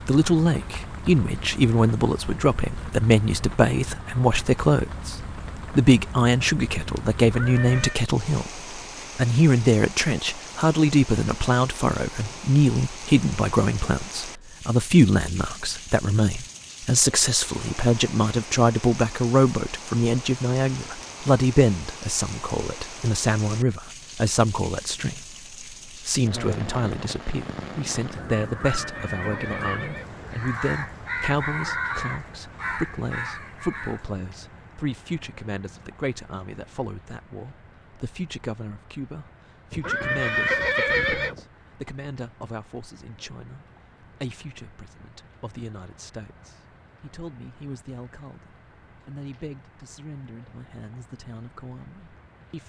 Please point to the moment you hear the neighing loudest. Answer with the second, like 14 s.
41 s.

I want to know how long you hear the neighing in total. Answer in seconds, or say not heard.
4 s.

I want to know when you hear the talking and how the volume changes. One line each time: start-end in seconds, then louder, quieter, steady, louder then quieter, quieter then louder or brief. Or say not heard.
0.1-52.6 quieter.